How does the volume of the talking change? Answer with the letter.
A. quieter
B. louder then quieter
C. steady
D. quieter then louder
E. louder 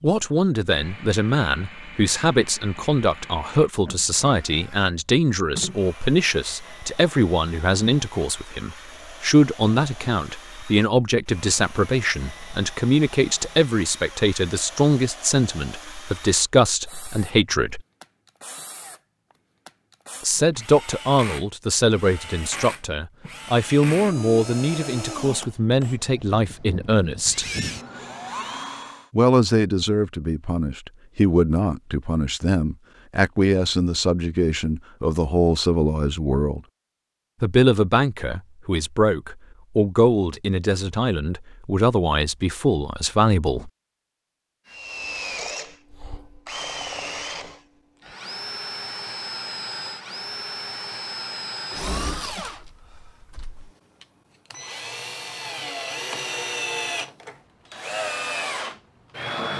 C.